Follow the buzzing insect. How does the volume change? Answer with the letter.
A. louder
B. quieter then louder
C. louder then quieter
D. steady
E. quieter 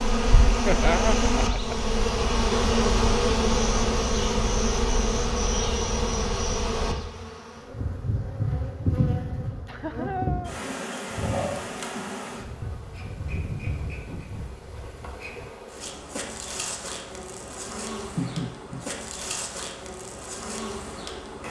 E.